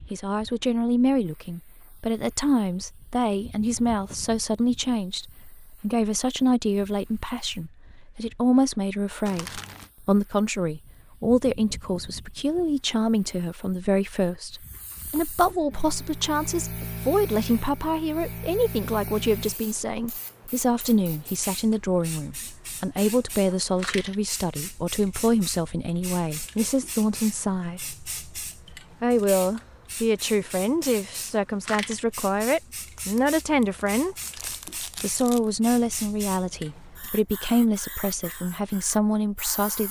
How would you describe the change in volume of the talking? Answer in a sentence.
The loudness of the talking stays about the same.